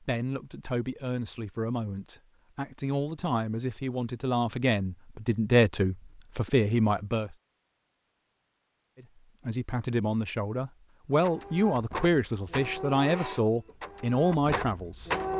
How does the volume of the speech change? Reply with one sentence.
The volume of the speech goes up.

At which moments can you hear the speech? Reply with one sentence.
You can hear the speech from 0.0 to 7.3 s and from 9.0 to 15.1 s.